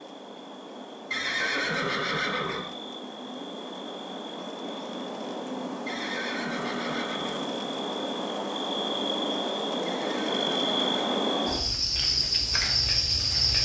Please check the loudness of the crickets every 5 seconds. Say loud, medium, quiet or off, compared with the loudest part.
quiet, medium, loud.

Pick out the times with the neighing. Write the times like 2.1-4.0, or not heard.
1.1-2.6, 5.8-7.4, 9.8-11.2.